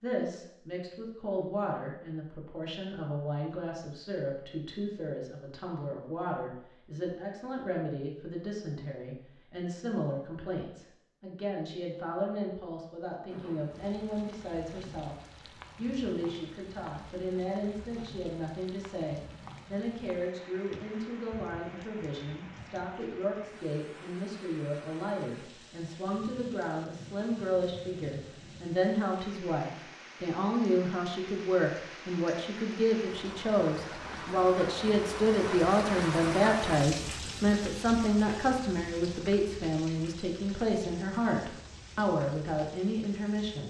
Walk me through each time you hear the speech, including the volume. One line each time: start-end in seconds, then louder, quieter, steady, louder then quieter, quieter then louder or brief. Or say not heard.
0.0-43.6 louder.